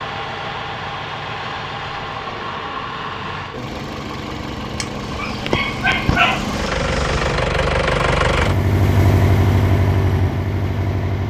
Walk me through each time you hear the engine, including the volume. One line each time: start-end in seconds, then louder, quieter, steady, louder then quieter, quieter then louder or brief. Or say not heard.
0.0-11.2 louder.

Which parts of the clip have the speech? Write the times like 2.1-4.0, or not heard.
not heard.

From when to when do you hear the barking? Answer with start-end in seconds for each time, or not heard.
4.8-7.5.